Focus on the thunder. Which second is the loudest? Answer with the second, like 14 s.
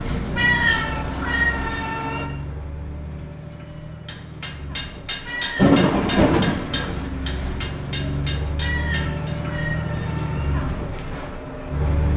6 s.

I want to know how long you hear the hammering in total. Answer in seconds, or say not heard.
5 s.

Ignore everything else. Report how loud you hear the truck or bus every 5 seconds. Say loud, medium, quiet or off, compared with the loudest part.
medium, loud, loud.